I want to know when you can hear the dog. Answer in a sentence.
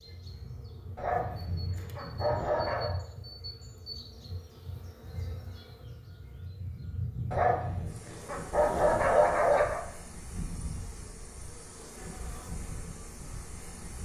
You can hear the dog from 0.9 to 2.9 s and from 7.3 to 9.8 s.